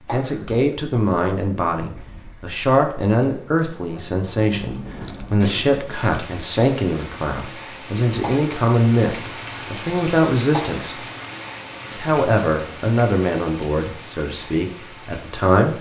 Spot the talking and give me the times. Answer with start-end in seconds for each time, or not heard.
0.1-11.0, 11.9-15.7.